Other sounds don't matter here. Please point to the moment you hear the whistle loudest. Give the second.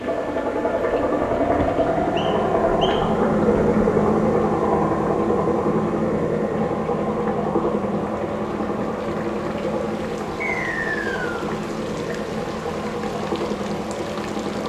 11 s.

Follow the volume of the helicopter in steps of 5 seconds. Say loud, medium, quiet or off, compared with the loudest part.
loud, loud, medium.